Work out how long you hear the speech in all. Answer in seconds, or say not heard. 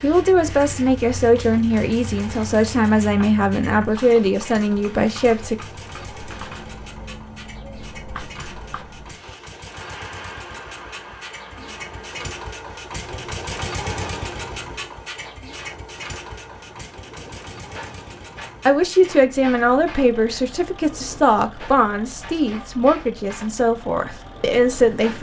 12 s.